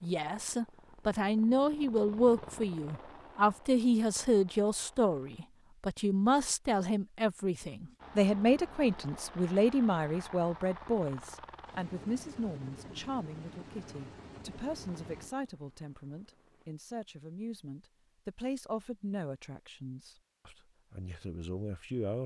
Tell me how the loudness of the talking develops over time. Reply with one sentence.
The loudness of the talking goes down.